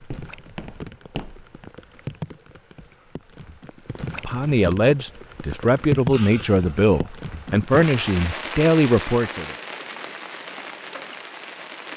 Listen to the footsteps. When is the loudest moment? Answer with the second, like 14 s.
1 s.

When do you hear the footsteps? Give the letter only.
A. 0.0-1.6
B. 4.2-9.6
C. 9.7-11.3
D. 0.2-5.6
A.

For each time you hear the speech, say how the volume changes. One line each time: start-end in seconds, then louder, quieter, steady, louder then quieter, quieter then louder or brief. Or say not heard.
4.2-9.6 steady.